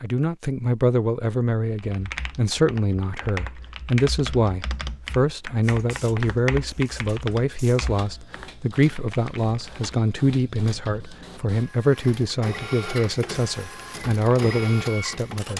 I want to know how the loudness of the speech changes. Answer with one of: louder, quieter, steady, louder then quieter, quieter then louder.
steady.